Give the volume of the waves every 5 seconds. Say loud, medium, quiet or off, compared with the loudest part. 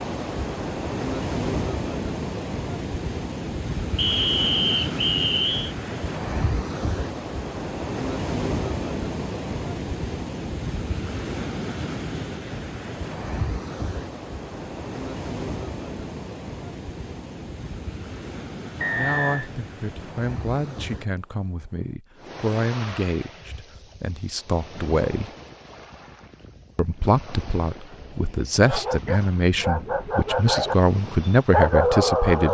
loud, loud, loud, medium, medium, quiet, quiet.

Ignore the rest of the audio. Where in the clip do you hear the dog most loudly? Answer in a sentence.
The loudest moment of the dog is at 32 seconds.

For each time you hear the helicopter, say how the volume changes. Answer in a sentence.
The helicopter can't be heard in this clip.